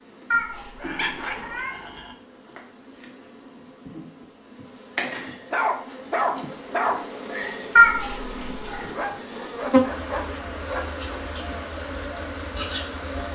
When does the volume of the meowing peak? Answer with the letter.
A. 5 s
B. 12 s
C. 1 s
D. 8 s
D.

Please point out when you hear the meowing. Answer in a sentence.
The meowing can be heard from 0.3 to 1.8 s and from 7.8 to 8.8 s.